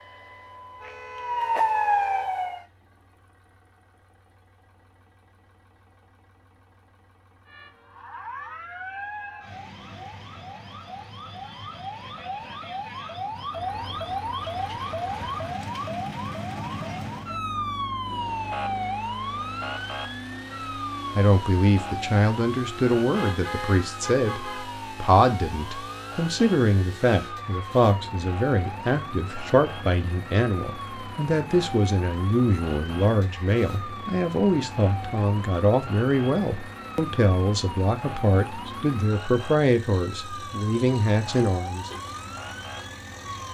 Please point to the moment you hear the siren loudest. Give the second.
2 s.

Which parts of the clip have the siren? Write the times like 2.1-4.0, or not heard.
0.0-2.6, 7.5-43.4.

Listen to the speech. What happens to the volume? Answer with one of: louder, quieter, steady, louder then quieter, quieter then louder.
steady.